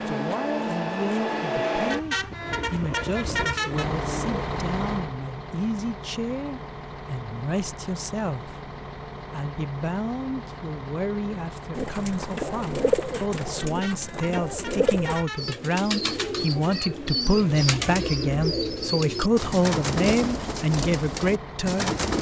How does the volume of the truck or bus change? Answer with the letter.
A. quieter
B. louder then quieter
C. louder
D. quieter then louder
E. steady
A.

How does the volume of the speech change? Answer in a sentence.
The loudness of the speech goes up.